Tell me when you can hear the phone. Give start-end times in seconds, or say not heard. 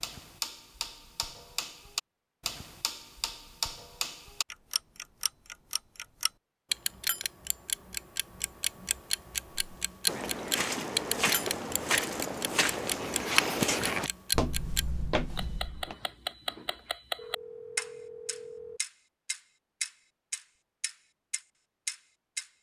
17.1-18.8.